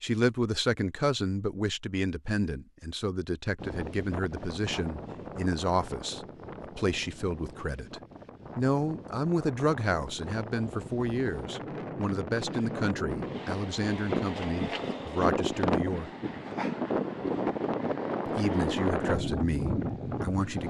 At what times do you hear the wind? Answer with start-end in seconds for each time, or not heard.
3.5-20.6.